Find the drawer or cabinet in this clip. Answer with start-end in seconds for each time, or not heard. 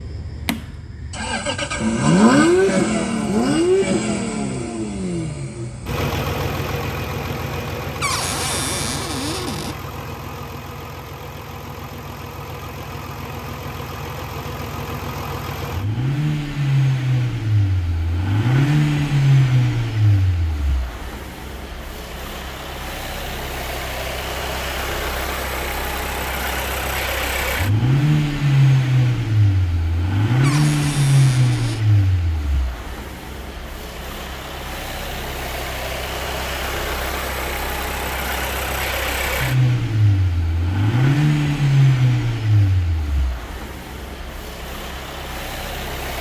8.0-9.8, 30.4-31.8.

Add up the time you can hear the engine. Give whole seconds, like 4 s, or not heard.
46 s.